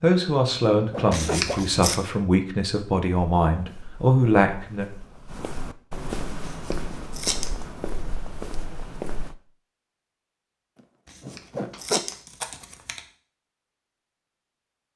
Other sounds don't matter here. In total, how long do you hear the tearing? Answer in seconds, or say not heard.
4 s.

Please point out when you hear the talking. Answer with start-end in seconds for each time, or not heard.
0.0-4.8.